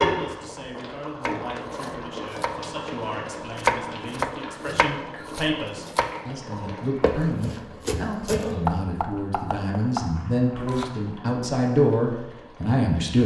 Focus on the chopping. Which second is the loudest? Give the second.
4 s.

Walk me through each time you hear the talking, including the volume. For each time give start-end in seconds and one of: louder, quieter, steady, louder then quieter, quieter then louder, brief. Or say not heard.
0.0-13.2 louder.